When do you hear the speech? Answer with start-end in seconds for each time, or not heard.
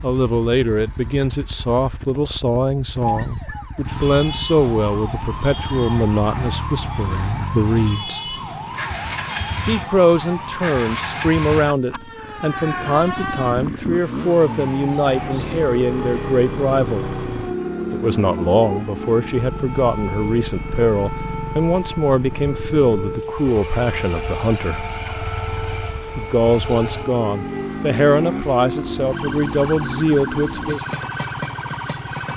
0.0-8.2, 9.7-17.1, 17.9-24.9, 26.1-30.9.